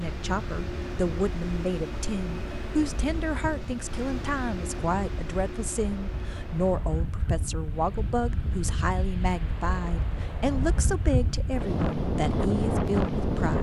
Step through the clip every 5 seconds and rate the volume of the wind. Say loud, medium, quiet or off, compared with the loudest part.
quiet, medium, loud.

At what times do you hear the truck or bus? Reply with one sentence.
The truck or bus can be heard from 0.0 to 6.8 s.